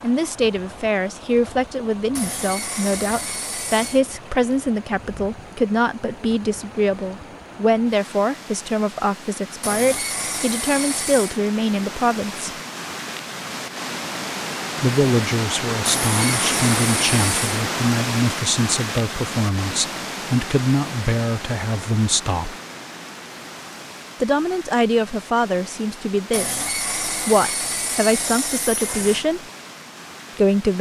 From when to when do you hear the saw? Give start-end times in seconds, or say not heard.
2.1-4.0, 9.6-11.4, 15.8-17.6, 26.3-29.2.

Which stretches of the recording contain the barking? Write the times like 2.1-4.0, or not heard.
not heard.